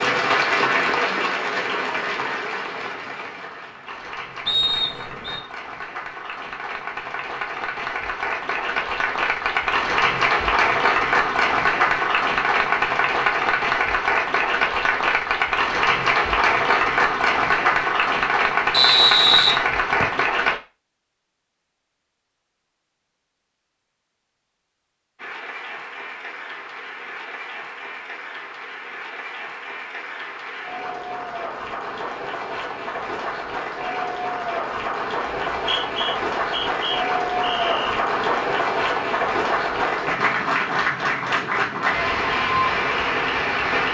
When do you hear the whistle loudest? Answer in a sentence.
The loudest moment of the whistle is at 19 seconds.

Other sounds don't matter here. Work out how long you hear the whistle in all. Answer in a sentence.
The whistle can be heard for 5 seconds in total.